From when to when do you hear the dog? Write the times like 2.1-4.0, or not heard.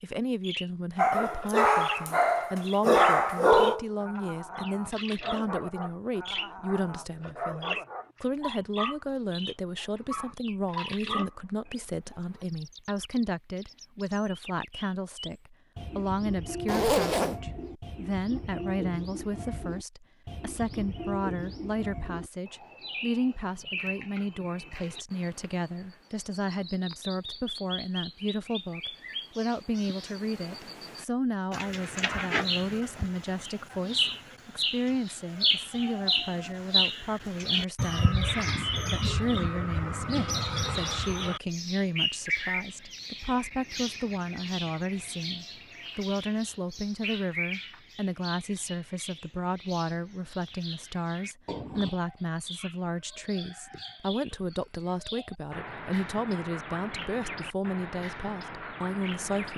0.9-12.4.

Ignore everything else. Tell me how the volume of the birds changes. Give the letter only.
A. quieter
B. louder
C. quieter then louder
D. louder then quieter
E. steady
D.